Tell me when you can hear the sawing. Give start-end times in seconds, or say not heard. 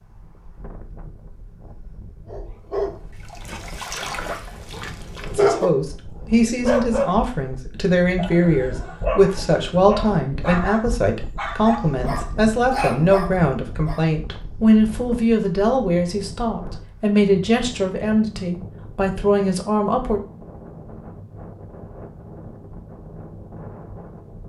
not heard.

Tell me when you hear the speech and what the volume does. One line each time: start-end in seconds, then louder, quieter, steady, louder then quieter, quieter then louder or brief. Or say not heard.
5.3-20.2 steady.